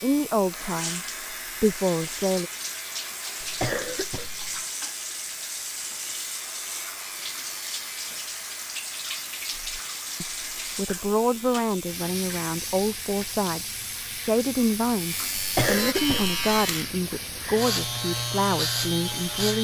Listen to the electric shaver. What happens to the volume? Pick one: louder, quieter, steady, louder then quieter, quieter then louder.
louder.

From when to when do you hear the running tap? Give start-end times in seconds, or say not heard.
0.0-19.5.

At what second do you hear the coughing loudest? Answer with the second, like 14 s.
16 s.